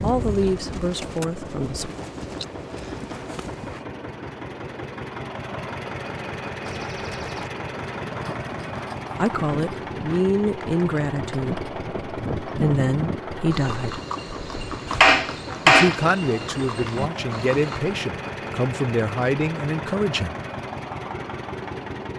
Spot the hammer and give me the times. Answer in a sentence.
You can hear the hammer from 14.9 to 17.3 s.